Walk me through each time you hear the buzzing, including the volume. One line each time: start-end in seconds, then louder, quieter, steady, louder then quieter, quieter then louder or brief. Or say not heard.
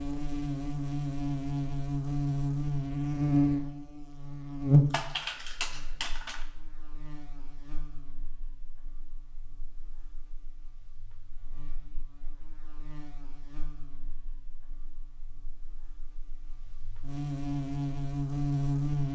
0.0-19.1 quieter then louder.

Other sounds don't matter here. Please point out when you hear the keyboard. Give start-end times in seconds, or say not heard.
4.9-6.5.